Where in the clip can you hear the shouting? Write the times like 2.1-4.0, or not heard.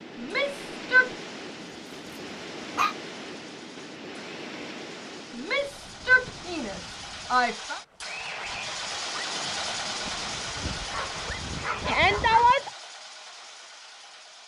0.1-1.1, 5.3-7.8, 11.8-12.7.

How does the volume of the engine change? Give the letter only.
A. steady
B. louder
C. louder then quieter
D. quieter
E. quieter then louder
C.